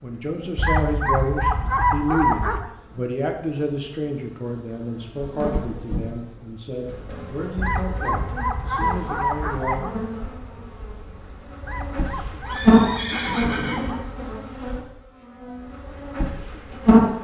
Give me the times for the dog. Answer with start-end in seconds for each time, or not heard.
0.6-2.6, 7.5-9.9, 11.6-14.4.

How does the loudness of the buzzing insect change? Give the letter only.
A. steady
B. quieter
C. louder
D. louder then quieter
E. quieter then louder
D.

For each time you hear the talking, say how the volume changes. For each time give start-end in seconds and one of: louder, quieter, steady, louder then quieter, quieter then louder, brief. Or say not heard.
0.0-9.9 quieter.